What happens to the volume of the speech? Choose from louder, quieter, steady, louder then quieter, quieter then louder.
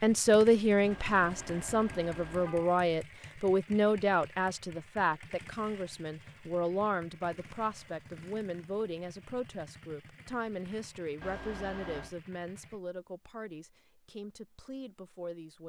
quieter.